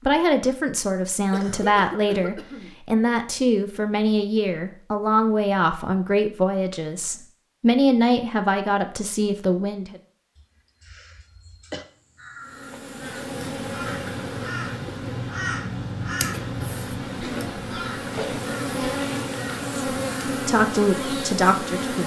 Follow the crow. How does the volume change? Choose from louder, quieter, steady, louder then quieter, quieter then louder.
louder then quieter.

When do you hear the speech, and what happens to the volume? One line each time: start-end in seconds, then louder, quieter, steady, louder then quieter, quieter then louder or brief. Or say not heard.
0.1-10.0 steady
19.6-22.0 brief.